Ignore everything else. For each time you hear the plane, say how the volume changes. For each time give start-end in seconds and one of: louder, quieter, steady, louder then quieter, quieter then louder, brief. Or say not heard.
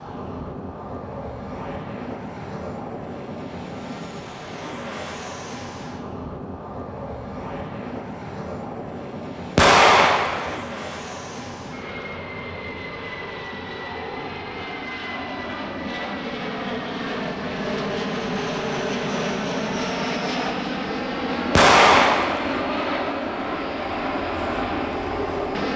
0.0-25.7 louder.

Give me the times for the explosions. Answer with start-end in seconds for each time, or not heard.
9.6-10.7, 21.5-22.6.